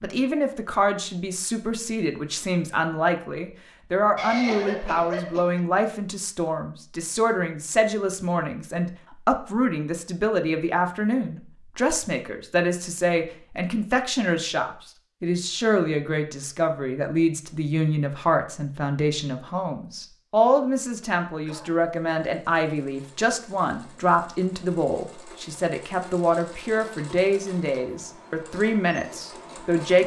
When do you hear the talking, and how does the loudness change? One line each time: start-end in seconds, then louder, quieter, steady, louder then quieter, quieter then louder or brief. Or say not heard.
0.0-30.0 steady.